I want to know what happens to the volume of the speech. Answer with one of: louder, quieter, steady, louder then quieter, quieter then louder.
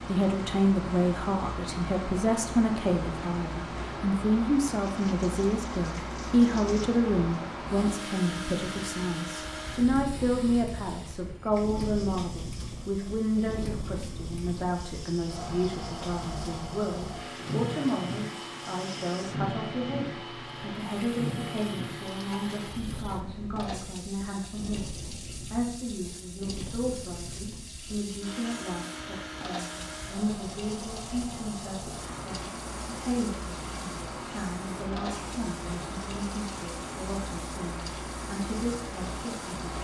quieter.